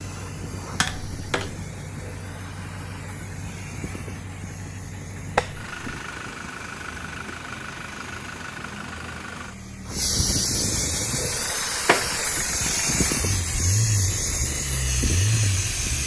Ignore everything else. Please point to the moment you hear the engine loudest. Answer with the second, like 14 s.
15 s.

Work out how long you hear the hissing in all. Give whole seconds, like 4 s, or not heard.
16 s.